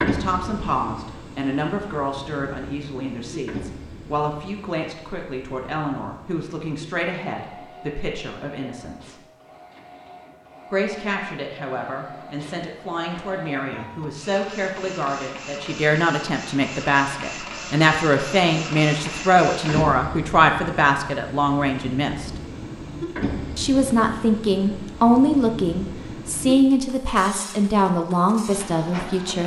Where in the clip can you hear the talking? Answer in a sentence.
You can hear the talking from 0.0 to 9.2 s, from 10.7 to 22.3 s and from 23.6 to 29.4 s.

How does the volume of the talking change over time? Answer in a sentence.
The volume of the talking goes up.